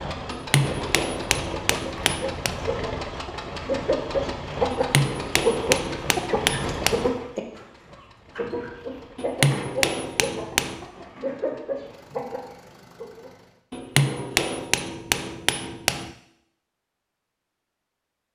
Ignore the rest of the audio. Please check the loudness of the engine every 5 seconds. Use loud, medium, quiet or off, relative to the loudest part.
loud, loud, quiet, off.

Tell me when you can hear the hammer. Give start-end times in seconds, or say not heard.
0.3-2.5, 4.7-7.1, 9.2-10.8, 13.7-16.1.